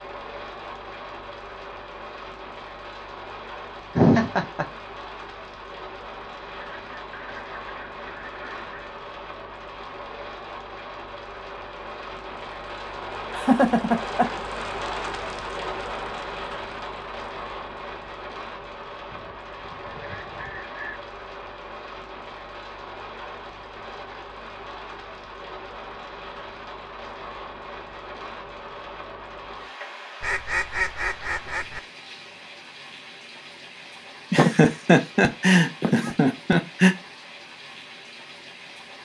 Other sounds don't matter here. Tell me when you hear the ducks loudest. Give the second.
31 s.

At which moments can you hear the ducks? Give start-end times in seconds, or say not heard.
6.5-8.9, 19.1-21.0, 30.2-31.8.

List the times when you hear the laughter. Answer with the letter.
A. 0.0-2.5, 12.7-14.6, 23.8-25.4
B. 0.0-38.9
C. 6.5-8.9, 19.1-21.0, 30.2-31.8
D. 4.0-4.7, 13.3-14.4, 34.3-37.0
D.